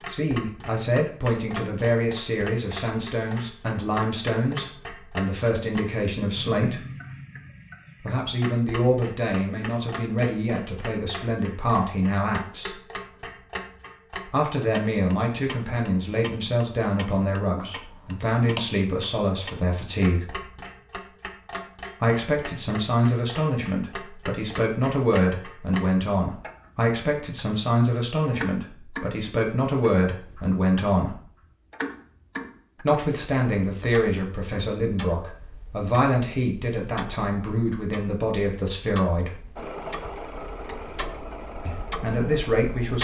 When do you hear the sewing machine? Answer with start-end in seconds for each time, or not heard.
39.5-42.9.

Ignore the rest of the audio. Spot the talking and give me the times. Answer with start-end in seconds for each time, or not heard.
0.0-6.8, 8.0-12.8, 14.2-20.3, 22.0-31.2, 32.8-39.4, 41.6-42.9.